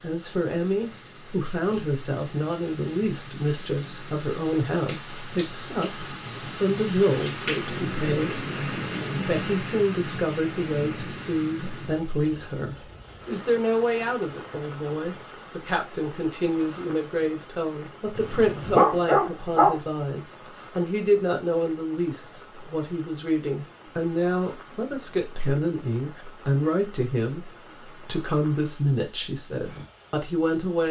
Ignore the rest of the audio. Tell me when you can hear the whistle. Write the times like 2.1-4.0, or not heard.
not heard.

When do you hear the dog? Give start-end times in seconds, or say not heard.
18.1-19.8.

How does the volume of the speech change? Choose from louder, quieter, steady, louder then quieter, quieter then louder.
steady.